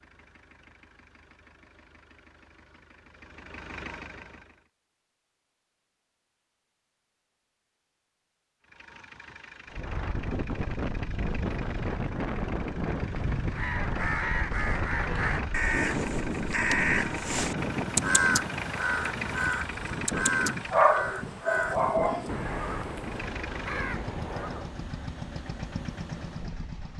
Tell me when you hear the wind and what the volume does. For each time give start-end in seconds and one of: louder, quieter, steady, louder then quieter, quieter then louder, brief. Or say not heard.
9.7-26.9 quieter.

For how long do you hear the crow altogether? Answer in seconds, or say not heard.
12 s.